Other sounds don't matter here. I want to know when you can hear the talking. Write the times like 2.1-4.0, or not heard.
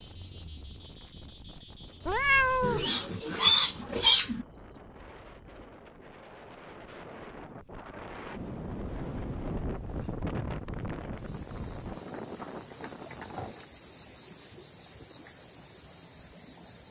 not heard.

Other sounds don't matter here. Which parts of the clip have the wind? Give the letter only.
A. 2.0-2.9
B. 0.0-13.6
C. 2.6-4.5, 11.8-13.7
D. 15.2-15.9
B.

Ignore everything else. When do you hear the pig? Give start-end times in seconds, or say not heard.
2.6-4.5, 11.8-13.7.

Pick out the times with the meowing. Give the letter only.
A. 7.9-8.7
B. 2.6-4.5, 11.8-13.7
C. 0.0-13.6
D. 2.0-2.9
D.